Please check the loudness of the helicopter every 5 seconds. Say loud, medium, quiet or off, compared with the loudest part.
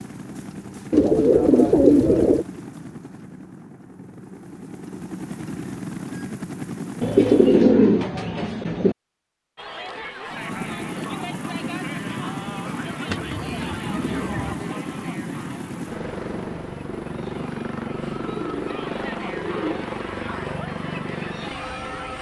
medium, loud, loud, loud, loud.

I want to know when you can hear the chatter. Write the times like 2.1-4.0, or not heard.
9.6-22.1.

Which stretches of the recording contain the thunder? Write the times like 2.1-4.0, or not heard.
not heard.